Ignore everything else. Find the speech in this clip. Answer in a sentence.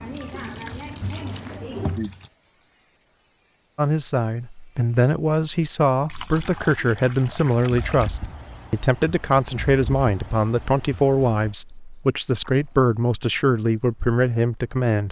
You can hear the speech from 3.8 to 15.0 s.